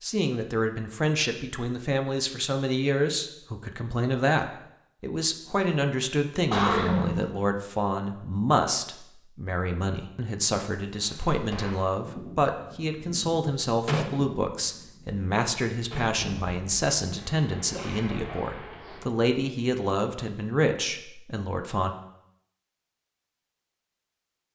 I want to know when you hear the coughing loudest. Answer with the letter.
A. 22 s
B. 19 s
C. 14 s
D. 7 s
D.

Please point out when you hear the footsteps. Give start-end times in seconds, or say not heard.
not heard.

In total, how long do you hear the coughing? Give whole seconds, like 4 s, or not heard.
2 s.